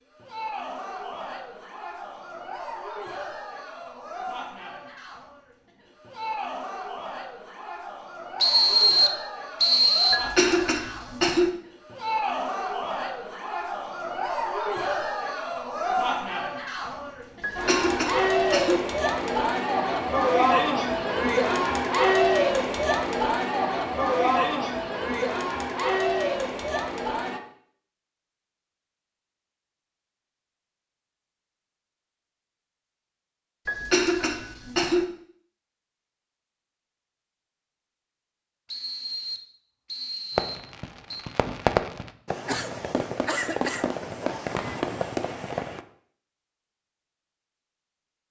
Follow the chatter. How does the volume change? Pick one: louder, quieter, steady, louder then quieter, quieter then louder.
louder.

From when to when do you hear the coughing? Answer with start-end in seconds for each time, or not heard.
10.1-11.5, 17.4-18.8, 33.6-35.0.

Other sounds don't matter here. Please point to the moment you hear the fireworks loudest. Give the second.
42 s.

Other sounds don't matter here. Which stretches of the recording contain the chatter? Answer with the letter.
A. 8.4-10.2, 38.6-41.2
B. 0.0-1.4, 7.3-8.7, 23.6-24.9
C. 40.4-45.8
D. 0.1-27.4
D.